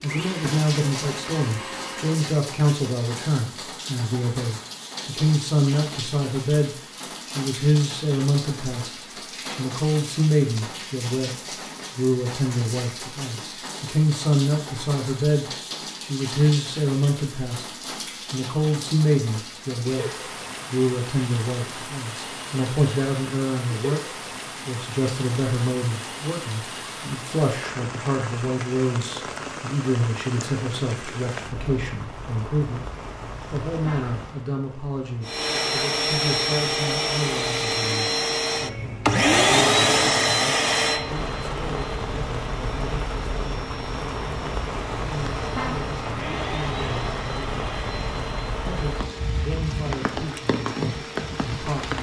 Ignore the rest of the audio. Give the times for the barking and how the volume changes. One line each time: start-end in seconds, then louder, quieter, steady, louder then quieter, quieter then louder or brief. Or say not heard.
not heard.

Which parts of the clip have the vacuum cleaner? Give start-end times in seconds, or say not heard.
0.0-2.4, 35.2-51.8.